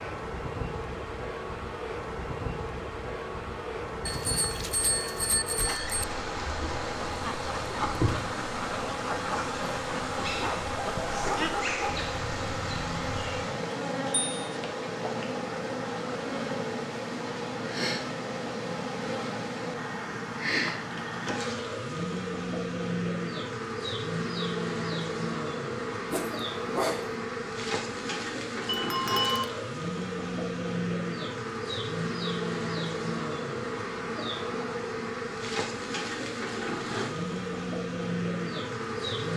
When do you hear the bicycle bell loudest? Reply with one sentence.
The volume of the bicycle bell peaks at 29 seconds.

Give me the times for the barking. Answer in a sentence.
You can hear the barking from 10.4 to 12.1 s and from 26.1 to 27.1 s.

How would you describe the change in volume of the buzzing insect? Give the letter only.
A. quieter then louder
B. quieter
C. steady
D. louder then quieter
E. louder
C.